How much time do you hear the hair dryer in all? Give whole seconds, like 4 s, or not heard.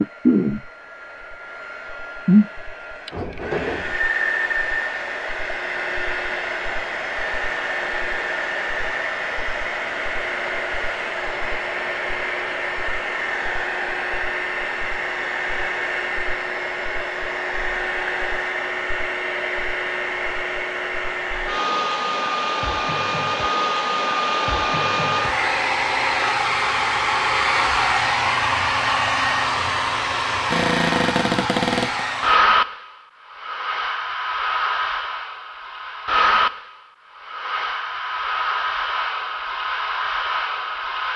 41 s.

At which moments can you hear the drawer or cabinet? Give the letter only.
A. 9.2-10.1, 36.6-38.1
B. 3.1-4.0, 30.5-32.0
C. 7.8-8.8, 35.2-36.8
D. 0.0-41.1
B.